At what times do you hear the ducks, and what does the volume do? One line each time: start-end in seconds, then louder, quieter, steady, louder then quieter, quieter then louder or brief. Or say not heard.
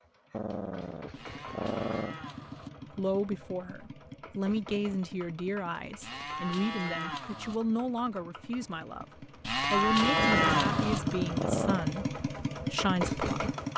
not heard.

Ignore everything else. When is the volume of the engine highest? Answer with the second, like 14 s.
11 s.